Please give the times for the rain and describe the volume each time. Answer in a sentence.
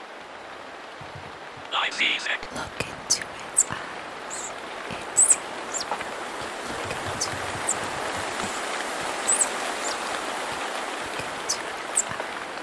The rain can be heard from 0.0 to 12.5 s, getting louder.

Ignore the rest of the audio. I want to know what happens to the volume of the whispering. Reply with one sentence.
The volume of the whispering goes down.